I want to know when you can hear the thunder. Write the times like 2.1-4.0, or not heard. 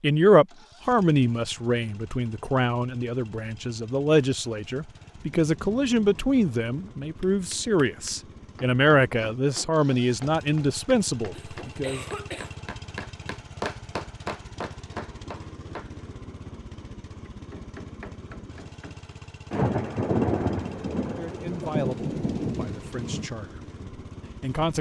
5.2-7.1, 19.5-23.3.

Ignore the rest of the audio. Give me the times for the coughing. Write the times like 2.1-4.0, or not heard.
11.3-12.6.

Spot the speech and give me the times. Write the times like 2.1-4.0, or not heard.
0.0-12.1, 21.1-24.7.